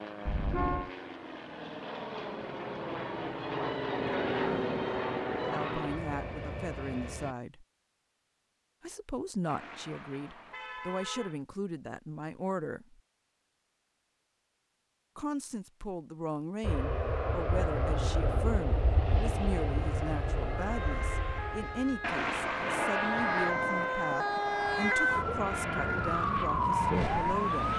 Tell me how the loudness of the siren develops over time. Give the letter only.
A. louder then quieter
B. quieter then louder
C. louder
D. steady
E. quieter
C.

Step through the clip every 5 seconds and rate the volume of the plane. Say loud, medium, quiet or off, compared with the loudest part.
loud, loud, off, loud, loud, medium.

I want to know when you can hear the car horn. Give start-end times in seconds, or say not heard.
0.2-0.9, 9.4-11.4, 22.0-22.9.